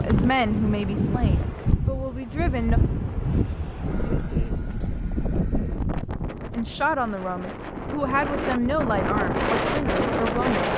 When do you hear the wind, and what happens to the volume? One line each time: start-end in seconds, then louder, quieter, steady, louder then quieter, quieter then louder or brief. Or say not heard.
0.0-10.7 quieter then louder.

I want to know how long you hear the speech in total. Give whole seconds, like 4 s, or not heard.
7 s.